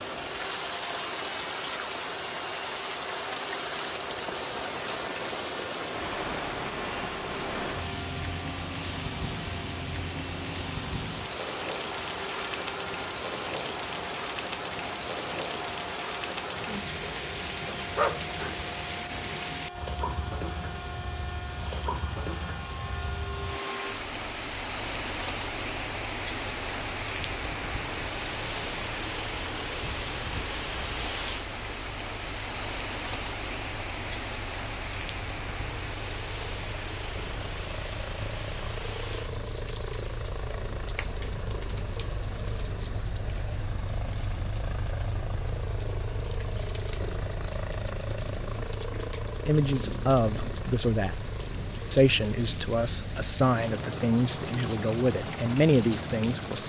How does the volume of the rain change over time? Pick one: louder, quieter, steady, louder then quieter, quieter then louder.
quieter.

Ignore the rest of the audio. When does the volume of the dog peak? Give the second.
18 s.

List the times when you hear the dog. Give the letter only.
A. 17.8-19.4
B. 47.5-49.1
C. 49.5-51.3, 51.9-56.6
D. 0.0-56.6
A.